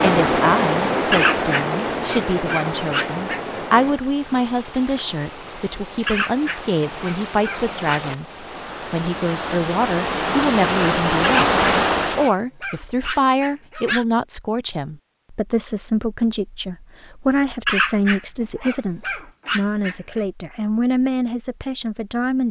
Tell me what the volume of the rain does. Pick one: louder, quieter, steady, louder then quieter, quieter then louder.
quieter then louder.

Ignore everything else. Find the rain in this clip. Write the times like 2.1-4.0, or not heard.
0.0-12.3.